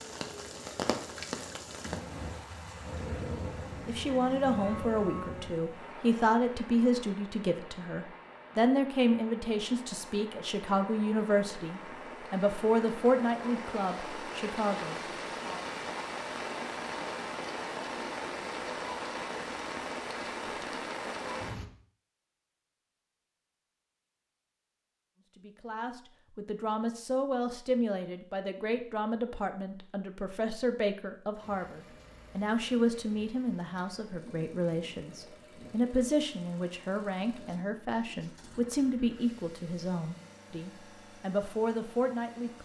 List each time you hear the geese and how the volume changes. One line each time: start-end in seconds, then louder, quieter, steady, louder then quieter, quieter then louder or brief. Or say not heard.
not heard.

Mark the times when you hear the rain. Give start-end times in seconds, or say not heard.
0.0-21.6.